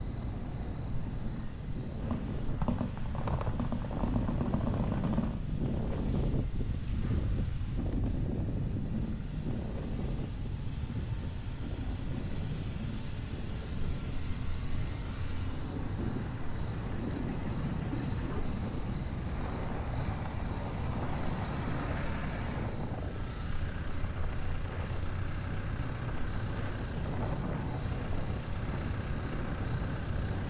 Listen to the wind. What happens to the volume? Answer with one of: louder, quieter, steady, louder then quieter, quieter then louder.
quieter.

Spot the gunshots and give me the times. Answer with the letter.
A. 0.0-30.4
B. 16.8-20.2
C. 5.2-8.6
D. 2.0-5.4
D.